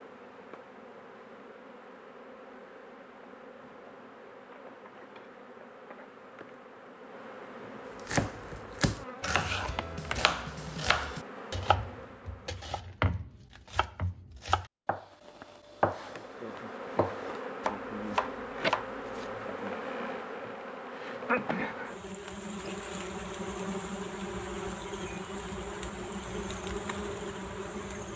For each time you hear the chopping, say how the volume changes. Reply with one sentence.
You can hear the chopping from 8.1 to 19.7 s, at a steady volume.